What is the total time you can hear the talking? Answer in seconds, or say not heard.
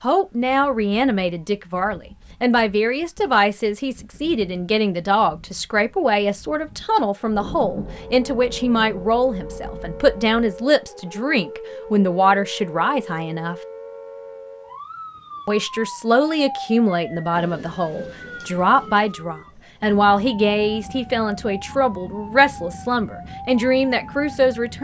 23 s.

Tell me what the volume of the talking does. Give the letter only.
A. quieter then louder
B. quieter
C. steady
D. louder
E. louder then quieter
C.